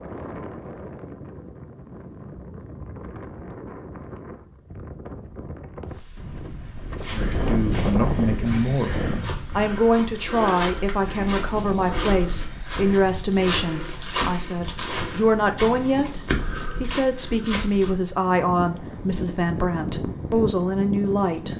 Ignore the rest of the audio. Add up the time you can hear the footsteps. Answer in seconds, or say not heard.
11 s.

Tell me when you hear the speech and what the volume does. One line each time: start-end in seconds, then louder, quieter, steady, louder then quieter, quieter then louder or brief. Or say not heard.
7.1-21.5 steady.